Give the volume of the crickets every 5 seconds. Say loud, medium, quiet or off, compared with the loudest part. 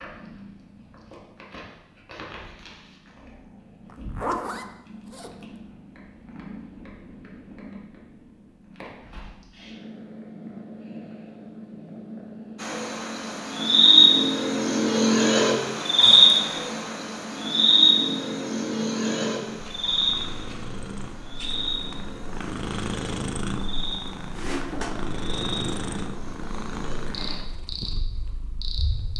off, off, loud, loud, quiet, quiet.